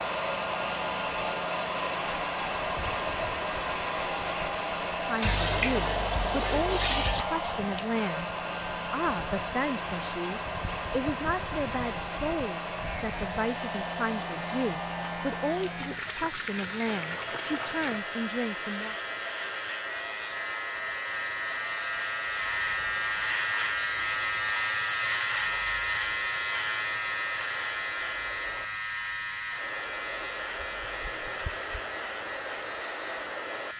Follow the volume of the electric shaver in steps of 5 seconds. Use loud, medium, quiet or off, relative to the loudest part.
quiet, quiet, medium, medium, loud, loud, medium.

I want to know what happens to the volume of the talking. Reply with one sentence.
The loudness of the talking stays about the same.